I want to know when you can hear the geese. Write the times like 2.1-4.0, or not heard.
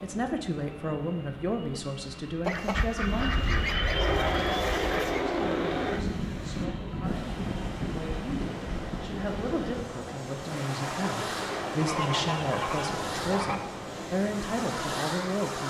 2.5-5.2, 11.7-13.6.